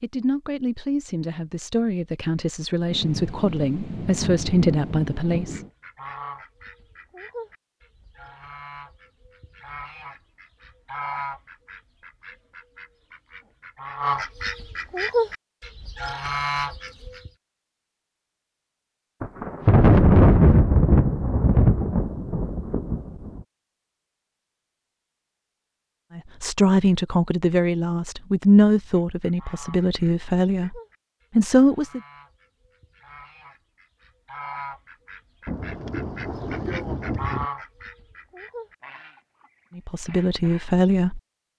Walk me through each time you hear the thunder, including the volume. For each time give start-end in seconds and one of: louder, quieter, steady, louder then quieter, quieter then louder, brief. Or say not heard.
2.9-5.7 brief
19.2-23.4 quieter
35.5-37.5 brief.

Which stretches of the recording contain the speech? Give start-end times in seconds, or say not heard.
0.0-5.6, 26.1-32.0, 39.8-41.2.